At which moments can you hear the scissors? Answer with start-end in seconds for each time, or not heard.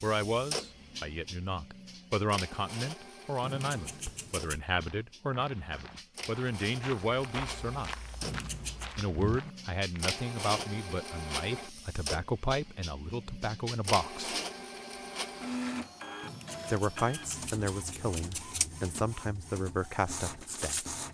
3.4-4.6, 8.2-8.9, 16.2-18.8.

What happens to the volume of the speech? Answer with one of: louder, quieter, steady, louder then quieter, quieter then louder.
steady.